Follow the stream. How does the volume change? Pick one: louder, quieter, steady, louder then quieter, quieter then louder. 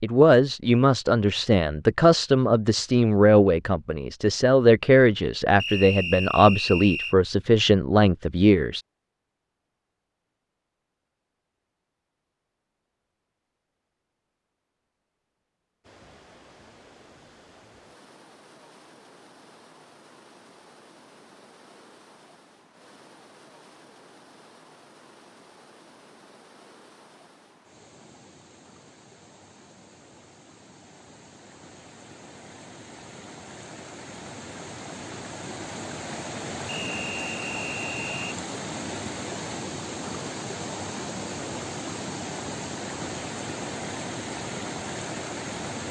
louder.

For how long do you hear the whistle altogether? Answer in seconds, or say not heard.
3 s.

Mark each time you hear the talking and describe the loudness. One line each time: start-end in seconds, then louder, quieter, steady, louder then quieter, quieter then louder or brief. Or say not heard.
0.0-8.8 steady.